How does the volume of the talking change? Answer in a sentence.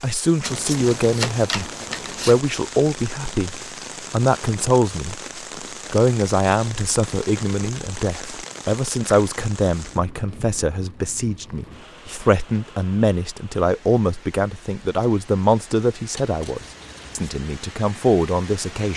The loudness of the talking stays about the same.